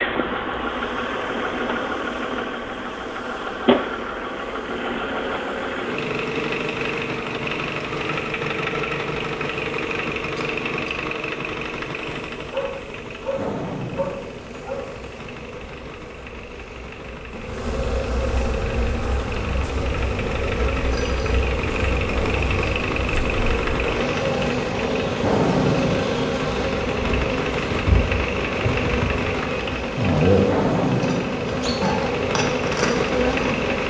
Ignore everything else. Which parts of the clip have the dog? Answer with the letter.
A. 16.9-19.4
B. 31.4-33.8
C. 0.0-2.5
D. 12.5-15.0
D.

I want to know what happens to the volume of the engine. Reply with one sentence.
The volume of the engine goes down, then up.